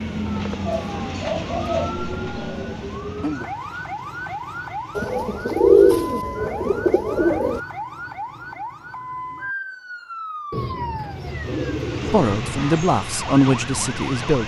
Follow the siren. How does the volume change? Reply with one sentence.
The volume of the siren goes down.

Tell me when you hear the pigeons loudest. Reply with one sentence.
The volume of the pigeons peaks at 6 seconds.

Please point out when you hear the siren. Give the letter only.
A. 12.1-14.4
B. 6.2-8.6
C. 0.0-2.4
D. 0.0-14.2
D.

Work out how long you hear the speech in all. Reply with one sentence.
You can hear the speech for 2 seconds altogether.